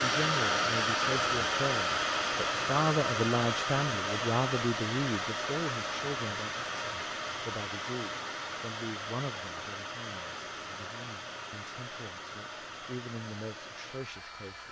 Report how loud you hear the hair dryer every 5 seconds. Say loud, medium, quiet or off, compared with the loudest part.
loud, medium, quiet.